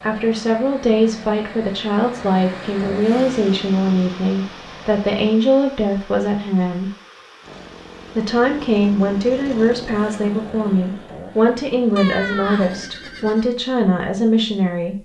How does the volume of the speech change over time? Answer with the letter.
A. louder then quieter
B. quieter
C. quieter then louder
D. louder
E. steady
E.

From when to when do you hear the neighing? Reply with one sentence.
You can hear the neighing from 11.9 to 13.4 s.